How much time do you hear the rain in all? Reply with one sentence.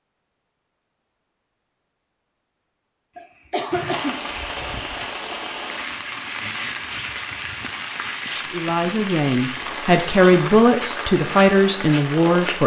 The rain can be heard for 9 seconds in total.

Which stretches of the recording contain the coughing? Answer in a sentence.
You can hear the coughing from 3.1 to 5.0 s.